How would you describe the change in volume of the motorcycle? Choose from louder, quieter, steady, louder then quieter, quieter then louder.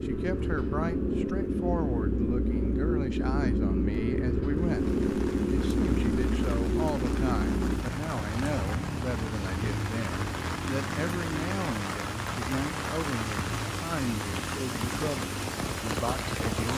quieter.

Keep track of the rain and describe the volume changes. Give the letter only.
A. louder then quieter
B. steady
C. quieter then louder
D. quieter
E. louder
E.